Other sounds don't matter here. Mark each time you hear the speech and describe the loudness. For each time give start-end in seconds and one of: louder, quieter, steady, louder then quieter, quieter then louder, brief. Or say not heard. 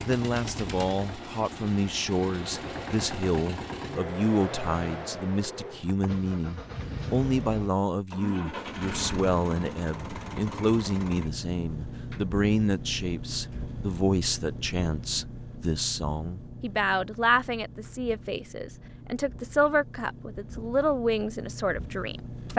0.1-22.5 steady.